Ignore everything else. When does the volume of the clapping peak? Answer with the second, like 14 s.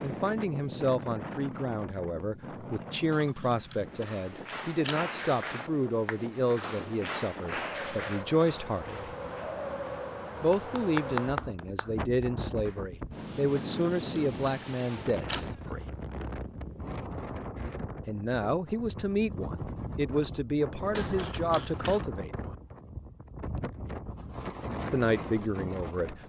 11 s.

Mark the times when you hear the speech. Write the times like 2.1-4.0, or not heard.
0.0-9.2, 10.4-15.8, 18.1-22.6, 24.9-26.2.